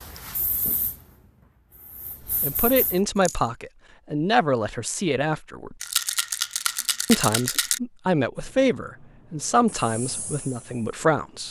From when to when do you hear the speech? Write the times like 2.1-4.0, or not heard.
2.4-5.8, 7.0-11.4.